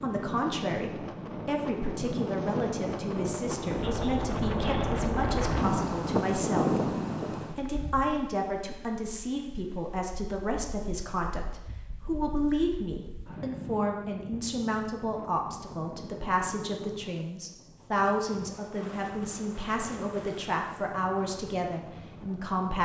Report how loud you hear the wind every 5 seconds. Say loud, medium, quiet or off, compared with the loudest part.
loud, loud, quiet, quiet, quiet.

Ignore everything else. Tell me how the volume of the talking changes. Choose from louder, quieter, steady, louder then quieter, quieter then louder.
steady.